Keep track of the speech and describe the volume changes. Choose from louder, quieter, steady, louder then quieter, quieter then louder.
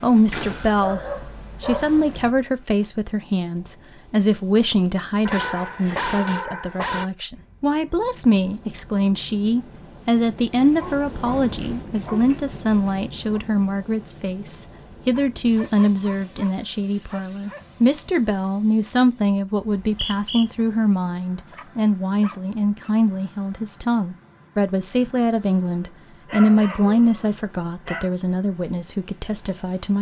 steady.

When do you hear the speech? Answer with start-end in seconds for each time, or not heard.
0.0-29.9.